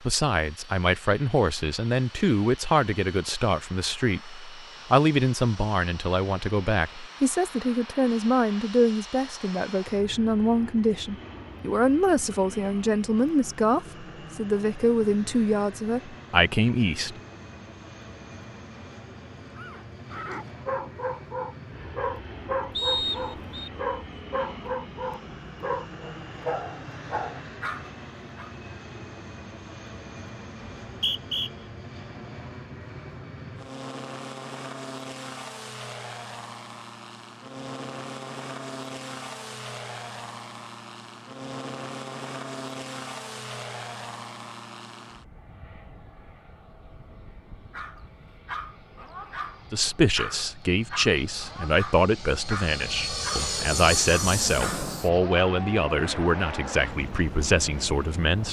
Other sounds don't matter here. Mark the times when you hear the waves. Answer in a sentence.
You can't hear the waves here.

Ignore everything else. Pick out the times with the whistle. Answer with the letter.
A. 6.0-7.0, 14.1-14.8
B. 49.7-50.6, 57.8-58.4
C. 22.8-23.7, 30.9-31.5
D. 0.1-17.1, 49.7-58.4
C.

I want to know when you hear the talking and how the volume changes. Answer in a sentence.
The talking can be heard from 0.1 to 17.1 s, at a steady volume; and from 49.7 to 58.4 s, at a steady volume.